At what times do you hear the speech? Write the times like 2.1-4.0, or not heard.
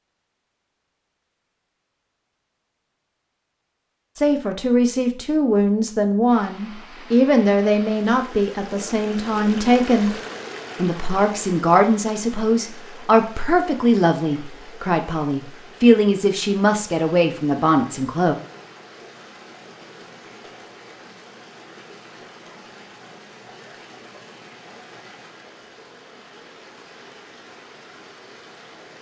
4.2-10.2, 10.8-18.4.